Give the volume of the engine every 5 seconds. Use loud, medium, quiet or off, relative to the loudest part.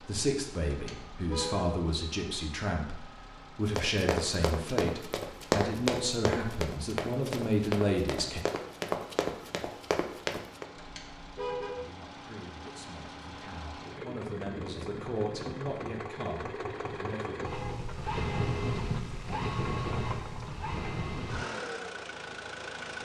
quiet, quiet, medium, loud, loud.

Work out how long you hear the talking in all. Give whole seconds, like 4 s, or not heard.
14 s.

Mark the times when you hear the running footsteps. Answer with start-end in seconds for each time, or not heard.
3.6-10.7.